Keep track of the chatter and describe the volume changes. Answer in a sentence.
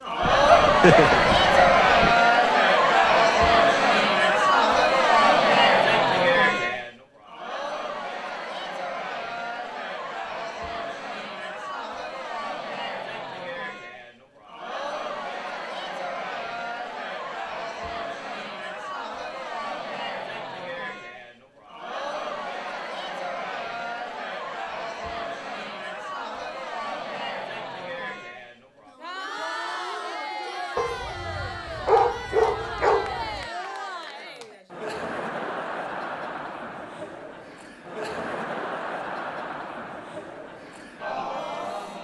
The loudness of the chatter goes down.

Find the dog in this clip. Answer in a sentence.
You can hear the dog from 0.2 to 2.1 s and from 30.8 to 33.5 s.